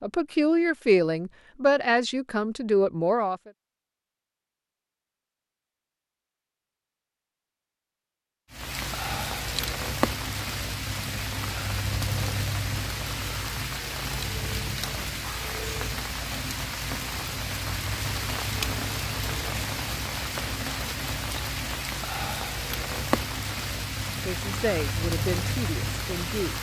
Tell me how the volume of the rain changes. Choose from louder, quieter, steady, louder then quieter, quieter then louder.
steady.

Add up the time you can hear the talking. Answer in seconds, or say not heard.
6 s.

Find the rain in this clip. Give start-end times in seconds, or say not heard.
8.5-26.5.